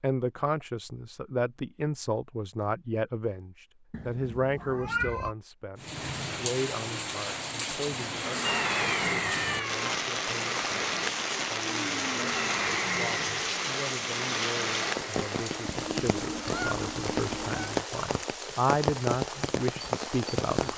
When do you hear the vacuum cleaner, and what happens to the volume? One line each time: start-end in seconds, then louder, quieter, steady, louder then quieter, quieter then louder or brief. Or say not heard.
8.2-15.8 steady.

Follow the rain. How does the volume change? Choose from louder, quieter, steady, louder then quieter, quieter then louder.
steady.